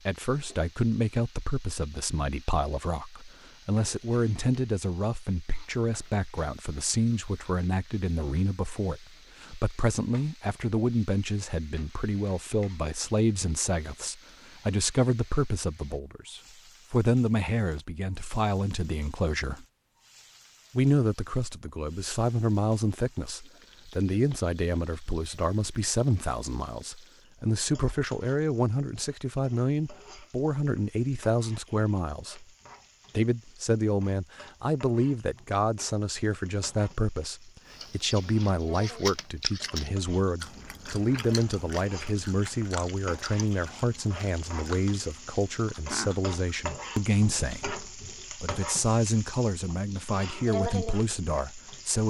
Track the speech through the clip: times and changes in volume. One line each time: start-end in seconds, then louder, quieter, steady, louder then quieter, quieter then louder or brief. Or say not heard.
0.1-19.6 steady
20.8-32.5 steady
33.1-52.0 steady.